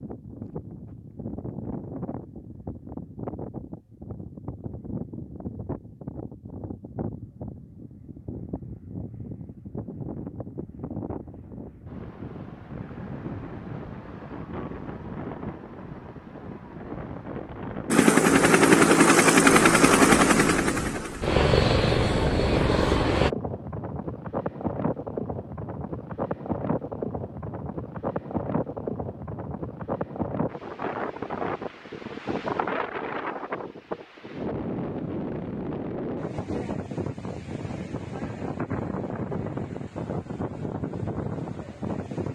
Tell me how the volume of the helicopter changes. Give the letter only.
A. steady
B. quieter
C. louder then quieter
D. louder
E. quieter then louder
B.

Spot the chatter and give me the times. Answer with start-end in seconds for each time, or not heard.
not heard.